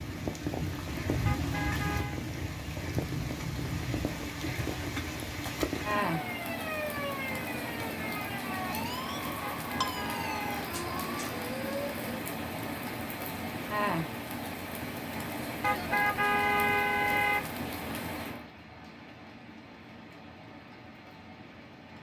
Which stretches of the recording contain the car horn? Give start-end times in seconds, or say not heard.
1.2-2.2, 9.4-10.7, 15.6-17.5.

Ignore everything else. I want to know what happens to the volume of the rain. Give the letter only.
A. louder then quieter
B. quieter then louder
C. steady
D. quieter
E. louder
D.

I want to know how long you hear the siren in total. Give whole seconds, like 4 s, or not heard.
6 s.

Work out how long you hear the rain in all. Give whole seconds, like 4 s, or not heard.
22 s.